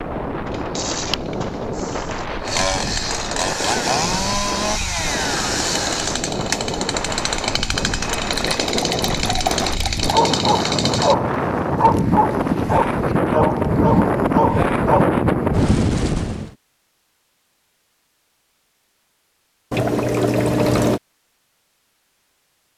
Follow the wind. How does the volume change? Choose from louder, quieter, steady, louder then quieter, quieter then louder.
louder.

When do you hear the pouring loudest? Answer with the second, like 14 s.
21 s.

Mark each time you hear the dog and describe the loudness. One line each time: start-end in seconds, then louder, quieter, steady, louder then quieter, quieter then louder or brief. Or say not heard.
10.1-15.2 steady.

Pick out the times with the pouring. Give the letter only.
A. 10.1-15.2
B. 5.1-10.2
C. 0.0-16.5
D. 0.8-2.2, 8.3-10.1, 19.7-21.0
D.